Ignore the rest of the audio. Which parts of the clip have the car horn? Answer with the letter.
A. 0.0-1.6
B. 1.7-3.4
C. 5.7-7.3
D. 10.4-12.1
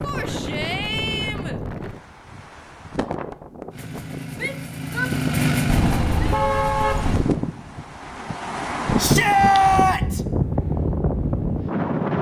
C.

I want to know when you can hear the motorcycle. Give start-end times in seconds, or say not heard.
3.7-7.0.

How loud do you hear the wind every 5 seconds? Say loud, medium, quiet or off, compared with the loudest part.
medium, loud, loud.